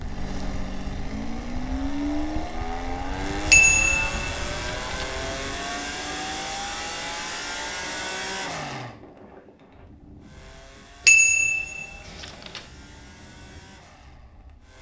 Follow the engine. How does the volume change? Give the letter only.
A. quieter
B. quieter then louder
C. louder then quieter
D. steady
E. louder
A.